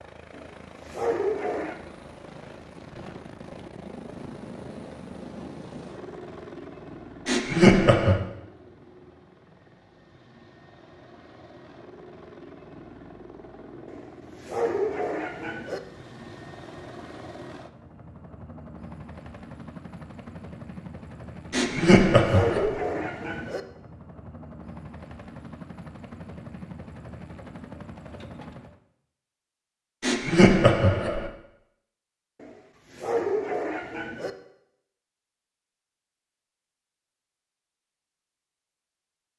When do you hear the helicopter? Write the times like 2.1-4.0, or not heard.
0.0-28.8.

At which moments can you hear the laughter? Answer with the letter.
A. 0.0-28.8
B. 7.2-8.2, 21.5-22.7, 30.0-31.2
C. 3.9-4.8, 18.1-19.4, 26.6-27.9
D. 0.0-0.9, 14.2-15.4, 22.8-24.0
B.